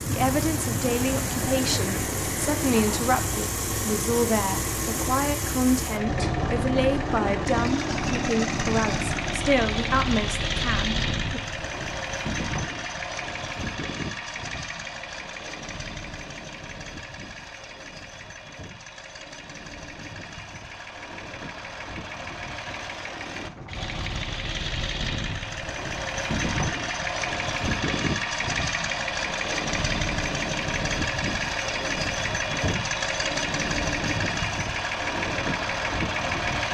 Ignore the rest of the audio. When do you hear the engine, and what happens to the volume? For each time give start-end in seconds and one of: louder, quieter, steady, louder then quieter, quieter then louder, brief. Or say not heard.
0.0-36.6 quieter then louder.